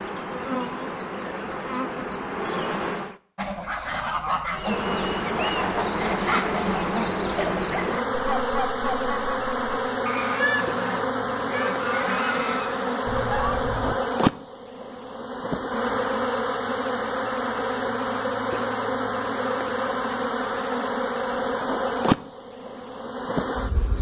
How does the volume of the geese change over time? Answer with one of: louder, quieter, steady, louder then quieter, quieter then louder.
steady.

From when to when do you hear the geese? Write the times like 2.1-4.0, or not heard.
3.4-13.9.